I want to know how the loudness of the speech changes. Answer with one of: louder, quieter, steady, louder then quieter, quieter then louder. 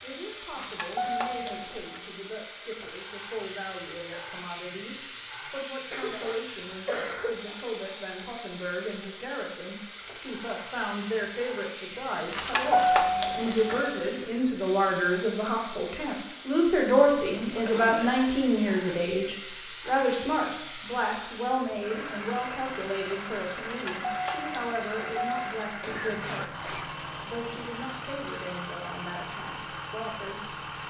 louder then quieter.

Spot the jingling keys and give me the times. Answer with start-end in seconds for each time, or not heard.
0.6-2.0, 12.3-13.9, 23.6-25.4.